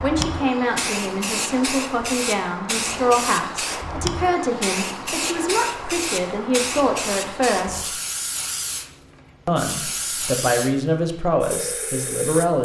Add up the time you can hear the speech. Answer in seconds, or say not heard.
11 s.